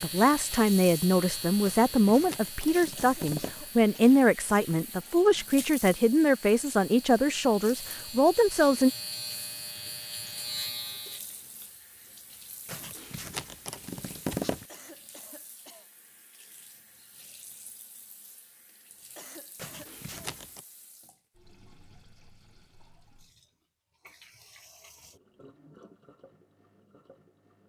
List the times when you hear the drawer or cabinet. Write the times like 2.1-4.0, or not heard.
not heard.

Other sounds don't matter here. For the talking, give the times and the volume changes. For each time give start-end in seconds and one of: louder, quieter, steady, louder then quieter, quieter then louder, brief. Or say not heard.
0.0-8.9 steady.